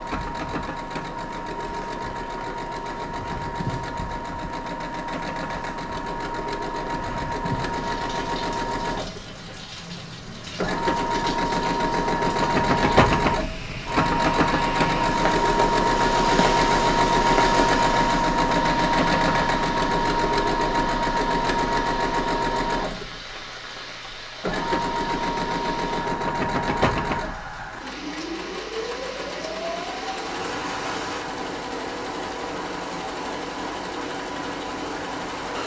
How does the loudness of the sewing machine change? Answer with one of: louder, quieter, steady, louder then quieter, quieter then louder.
louder then quieter.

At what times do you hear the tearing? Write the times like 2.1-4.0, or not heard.
not heard.